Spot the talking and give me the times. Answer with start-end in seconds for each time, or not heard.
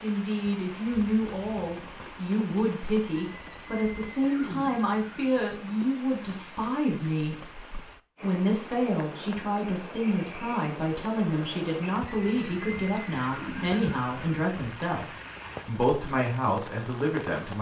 0.0-7.3, 8.2-15.1, 15.7-17.5.